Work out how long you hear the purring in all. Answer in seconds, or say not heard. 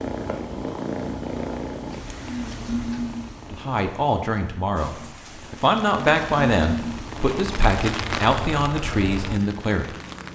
10 s.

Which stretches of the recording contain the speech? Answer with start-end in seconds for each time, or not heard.
3.5-9.9.